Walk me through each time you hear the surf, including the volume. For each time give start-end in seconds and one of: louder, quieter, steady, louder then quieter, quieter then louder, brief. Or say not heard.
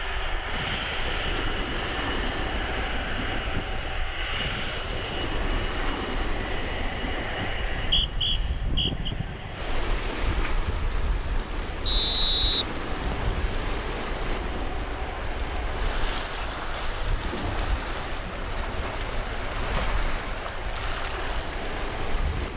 0.0-22.5 steady.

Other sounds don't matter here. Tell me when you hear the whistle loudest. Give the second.
12 s.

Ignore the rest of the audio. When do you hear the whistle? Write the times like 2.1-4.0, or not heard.
7.8-9.1, 11.8-13.3.